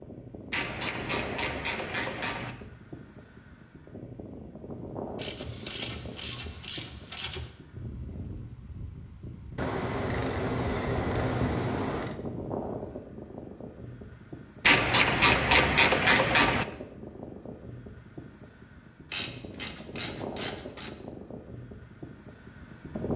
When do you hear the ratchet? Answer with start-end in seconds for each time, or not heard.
0.5-2.5, 5.2-7.5, 9.6-12.2, 14.7-16.6, 19.1-20.9.